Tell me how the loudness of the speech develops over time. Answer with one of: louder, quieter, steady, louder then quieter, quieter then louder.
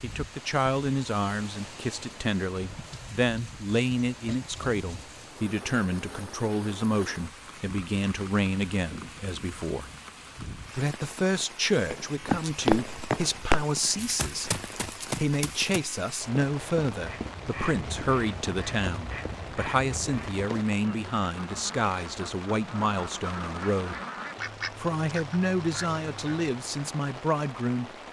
steady.